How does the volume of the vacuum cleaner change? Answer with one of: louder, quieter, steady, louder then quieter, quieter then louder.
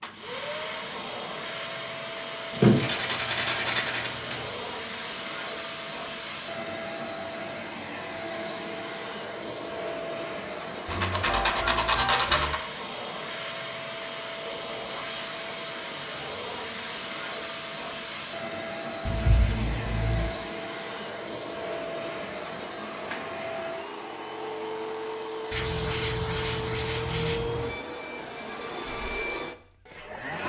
steady.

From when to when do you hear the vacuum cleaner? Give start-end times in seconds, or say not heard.
0.0-30.4.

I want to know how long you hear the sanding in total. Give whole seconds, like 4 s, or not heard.
7 s.